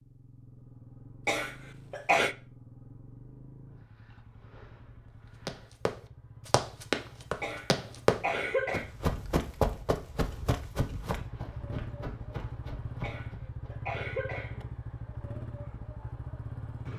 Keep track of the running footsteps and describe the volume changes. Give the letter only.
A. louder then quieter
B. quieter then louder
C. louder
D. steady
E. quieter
E.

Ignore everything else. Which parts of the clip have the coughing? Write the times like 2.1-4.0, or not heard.
1.2-2.4, 7.4-8.9, 13.0-14.7.